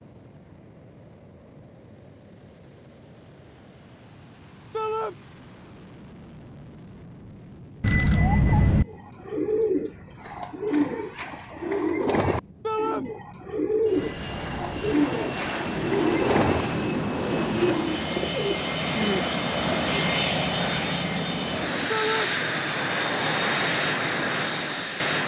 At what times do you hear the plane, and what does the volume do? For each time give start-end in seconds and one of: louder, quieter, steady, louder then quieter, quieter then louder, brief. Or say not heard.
0.0-25.2 louder.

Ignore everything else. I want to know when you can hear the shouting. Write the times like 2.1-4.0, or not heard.
4.7-5.2, 12.6-13.1, 21.9-22.3.